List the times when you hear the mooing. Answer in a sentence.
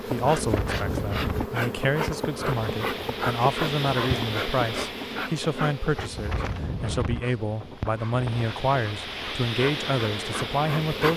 You can't hear the mooing here.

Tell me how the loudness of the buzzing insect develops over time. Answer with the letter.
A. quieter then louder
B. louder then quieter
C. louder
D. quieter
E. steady
A.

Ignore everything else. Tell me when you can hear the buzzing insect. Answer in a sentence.
The buzzing insect can be heard from 0.0 to 11.1 s.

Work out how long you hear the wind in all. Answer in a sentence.
You can hear the wind for 11 seconds altogether.